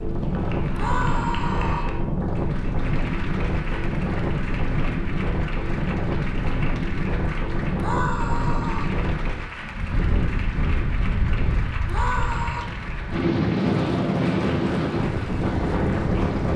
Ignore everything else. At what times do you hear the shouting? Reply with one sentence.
You can hear the shouting from 0.7 to 1.9 s, from 7.8 to 8.9 s and from 11.8 to 12.7 s.